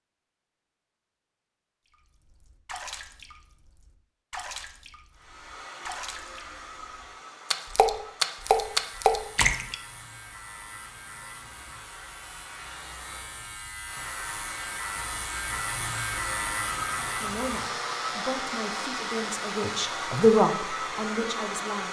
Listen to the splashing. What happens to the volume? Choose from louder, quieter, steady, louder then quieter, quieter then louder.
louder.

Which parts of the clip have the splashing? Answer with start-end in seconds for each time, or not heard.
1.9-9.8.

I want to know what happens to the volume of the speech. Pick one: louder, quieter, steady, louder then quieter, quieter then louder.
louder then quieter.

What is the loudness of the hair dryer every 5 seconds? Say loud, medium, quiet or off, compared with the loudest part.
off, quiet, quiet, loud, loud.